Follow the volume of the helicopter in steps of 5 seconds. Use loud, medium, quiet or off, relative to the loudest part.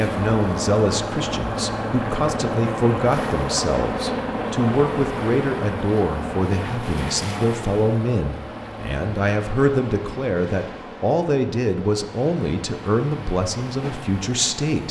loud, medium, quiet.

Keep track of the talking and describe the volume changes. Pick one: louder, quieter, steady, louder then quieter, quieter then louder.
steady.